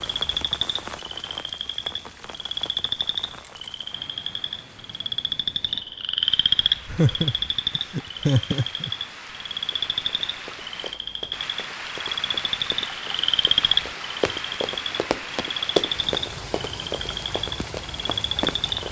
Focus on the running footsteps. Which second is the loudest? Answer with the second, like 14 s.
16 s.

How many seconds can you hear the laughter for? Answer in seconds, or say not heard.
2 s.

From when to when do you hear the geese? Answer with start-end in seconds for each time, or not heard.
not heard.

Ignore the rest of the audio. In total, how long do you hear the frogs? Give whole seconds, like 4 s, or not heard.
19 s.